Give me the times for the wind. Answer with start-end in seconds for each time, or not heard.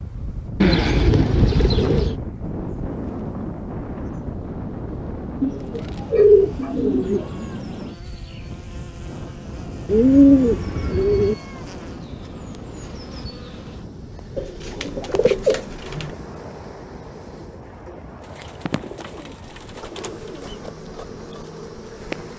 0.0-22.3.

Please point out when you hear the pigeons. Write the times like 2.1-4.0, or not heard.
0.6-2.1, 5.4-7.2, 9.8-11.3, 14.3-16.1, 18.4-20.5.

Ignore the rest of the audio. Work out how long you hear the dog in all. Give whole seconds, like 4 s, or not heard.
not heard.